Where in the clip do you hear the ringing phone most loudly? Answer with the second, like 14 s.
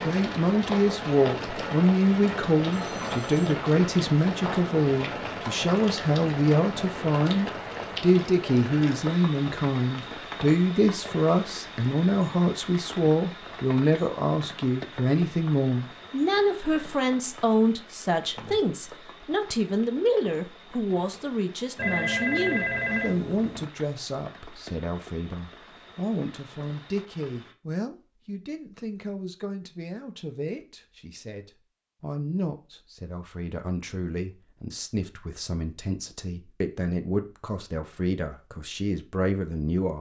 22 s.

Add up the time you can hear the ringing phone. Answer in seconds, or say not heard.
3 s.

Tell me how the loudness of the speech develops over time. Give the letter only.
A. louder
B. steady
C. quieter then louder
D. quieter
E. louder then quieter
D.